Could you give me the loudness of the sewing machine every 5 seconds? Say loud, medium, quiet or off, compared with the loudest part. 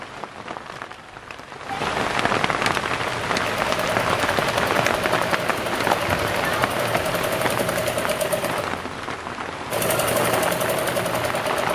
medium, loud, loud.